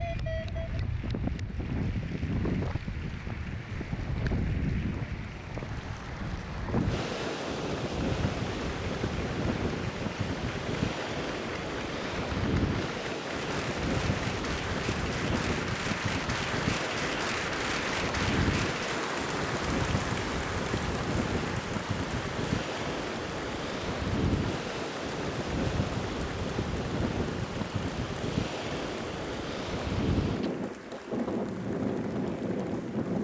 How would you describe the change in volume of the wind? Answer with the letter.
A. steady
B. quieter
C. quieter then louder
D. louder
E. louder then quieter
A.